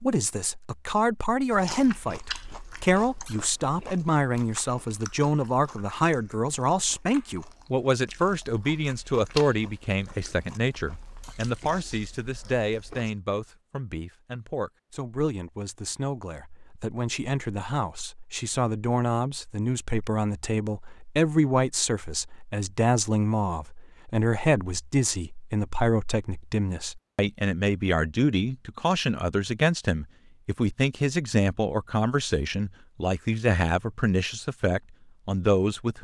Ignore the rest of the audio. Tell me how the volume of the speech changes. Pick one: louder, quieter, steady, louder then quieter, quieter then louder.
steady.